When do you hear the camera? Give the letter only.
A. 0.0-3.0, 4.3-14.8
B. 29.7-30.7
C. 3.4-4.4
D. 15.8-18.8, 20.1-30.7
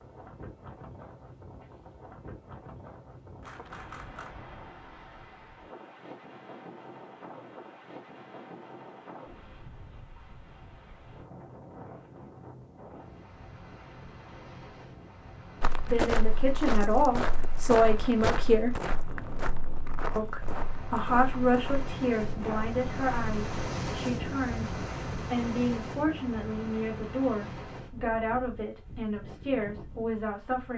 C.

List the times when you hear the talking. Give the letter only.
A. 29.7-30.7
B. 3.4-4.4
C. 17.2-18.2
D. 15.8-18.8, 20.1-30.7
D.